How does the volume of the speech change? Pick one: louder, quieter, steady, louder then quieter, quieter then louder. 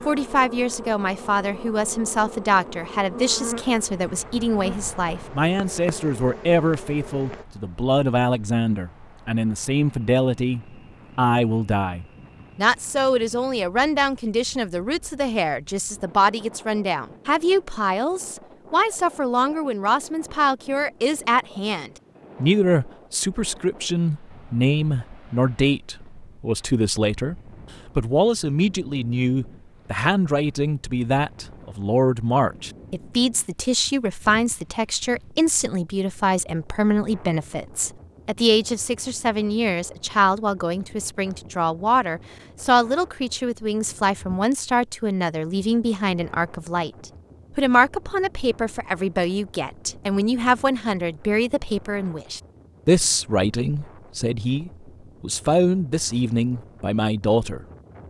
steady.